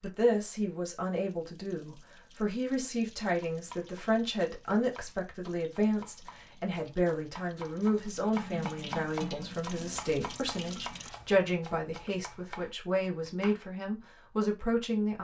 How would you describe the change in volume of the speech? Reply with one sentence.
The volume of the speech stays about the same.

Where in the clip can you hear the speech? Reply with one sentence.
The speech can be heard from 0.0 to 15.1 s.